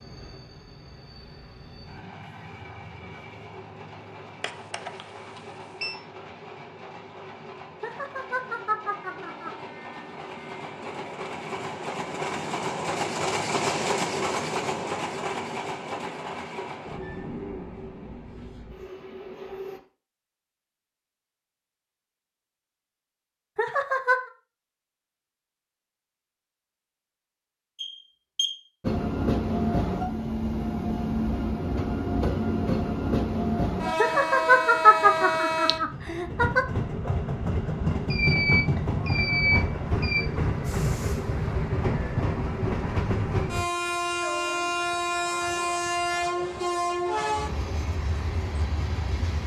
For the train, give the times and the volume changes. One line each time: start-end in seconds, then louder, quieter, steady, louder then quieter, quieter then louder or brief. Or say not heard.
0.0-19.8 louder then quieter
28.8-49.4 steady.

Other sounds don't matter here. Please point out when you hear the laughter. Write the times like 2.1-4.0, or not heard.
7.8-9.5, 23.6-24.3, 34.0-36.6.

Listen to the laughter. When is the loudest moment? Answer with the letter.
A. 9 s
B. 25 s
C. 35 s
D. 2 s
C.